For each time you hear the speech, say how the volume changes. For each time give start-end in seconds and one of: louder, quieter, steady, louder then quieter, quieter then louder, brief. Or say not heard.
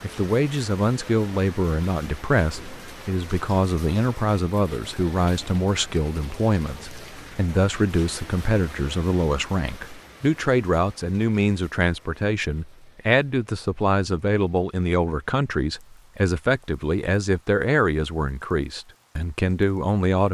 0.0-20.2 steady.